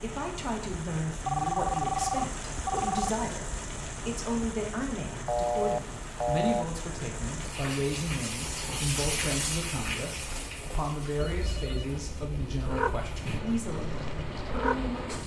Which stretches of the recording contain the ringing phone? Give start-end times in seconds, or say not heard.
1.2-3.1, 5.2-6.7, 11.2-13.2.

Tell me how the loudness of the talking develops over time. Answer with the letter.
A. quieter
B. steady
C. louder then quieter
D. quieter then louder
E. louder
B.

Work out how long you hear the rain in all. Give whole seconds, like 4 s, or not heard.
15 s.